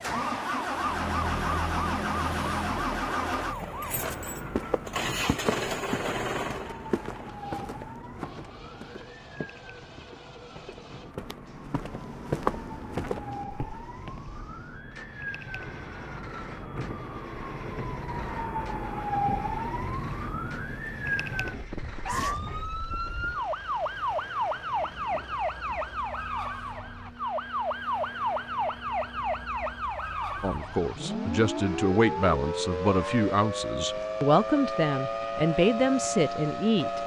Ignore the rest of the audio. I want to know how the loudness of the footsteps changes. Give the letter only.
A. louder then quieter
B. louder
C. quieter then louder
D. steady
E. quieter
C.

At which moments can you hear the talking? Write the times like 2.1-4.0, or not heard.
30.4-37.0.